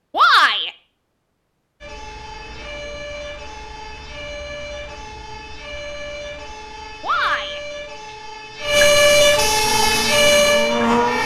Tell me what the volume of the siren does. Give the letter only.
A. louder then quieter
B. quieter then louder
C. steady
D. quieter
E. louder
E.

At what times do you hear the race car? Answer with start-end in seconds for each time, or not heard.
9.6-11.2.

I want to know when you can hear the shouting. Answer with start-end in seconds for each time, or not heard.
0.1-0.7, 7.0-7.6.